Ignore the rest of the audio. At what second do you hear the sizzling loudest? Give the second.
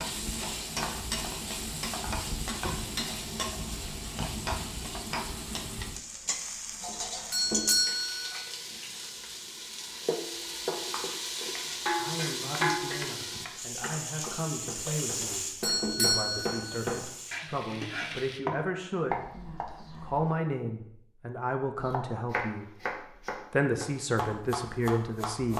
12 s.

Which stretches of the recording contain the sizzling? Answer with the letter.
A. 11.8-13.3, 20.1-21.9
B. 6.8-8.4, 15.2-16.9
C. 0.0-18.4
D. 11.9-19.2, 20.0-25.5
C.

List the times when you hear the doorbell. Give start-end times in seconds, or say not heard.
6.8-8.4, 15.2-16.9.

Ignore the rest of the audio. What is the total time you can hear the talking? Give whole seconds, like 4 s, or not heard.
13 s.